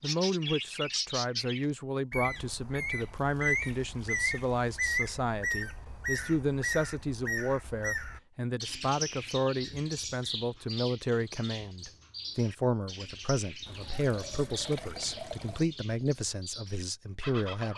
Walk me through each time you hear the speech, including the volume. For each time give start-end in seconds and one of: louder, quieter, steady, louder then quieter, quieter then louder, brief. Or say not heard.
0.0-17.7 steady.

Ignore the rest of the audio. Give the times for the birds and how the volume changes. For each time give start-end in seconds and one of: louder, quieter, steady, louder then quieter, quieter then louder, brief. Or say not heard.
0.0-17.7 quieter.